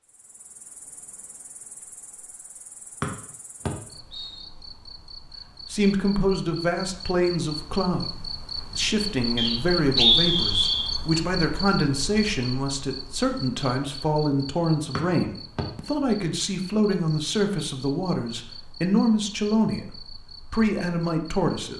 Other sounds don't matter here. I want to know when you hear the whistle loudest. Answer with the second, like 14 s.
10 s.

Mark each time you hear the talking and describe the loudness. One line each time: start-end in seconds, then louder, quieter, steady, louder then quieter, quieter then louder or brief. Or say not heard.
5.7-21.7 steady.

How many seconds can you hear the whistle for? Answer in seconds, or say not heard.
3 s.